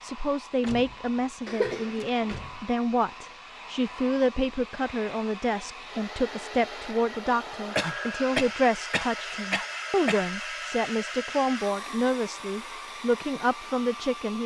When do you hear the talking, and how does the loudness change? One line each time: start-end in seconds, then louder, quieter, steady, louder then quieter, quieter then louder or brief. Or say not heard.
0.0-14.4 steady.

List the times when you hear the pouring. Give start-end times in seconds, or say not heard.
not heard.